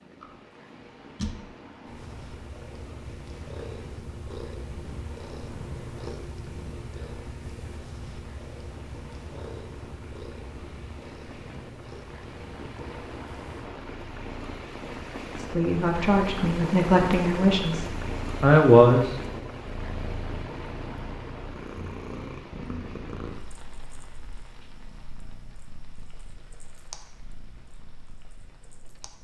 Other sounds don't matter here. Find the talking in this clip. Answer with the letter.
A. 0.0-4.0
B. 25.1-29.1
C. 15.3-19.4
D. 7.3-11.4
C.